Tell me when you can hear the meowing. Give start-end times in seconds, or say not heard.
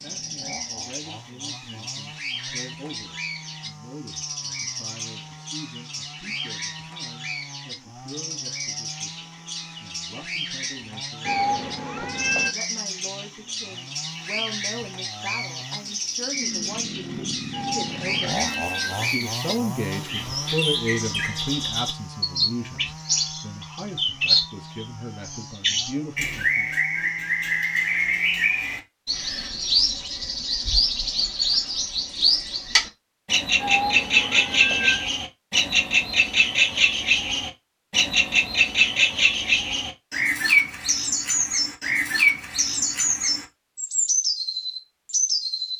11.2-12.6, 17.5-19.1, 33.6-35.1.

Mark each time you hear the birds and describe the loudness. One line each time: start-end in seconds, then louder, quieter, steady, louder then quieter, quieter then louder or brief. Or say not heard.
0.0-45.7 louder.